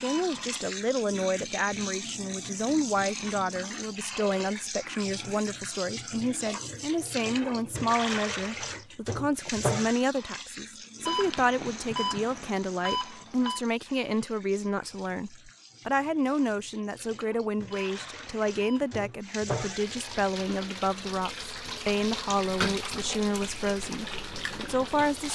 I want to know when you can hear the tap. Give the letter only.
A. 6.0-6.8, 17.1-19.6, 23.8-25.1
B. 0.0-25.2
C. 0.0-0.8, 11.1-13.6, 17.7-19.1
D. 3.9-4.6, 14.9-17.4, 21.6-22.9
B.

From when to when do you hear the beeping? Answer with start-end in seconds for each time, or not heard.
0.0-0.8, 11.1-13.6, 17.7-19.1.